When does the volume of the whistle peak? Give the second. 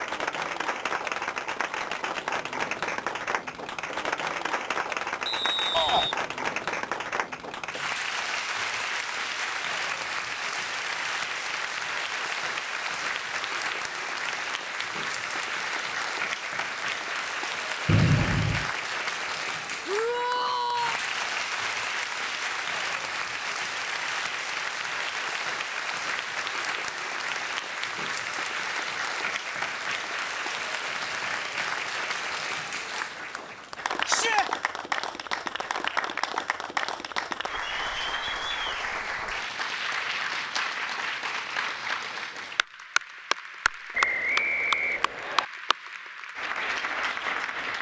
18 s.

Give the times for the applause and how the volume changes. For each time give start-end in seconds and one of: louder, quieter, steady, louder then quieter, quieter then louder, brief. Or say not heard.
0.0-47.7 steady.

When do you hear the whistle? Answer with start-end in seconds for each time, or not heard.
5.2-6.2, 17.9-18.7, 43.9-45.5.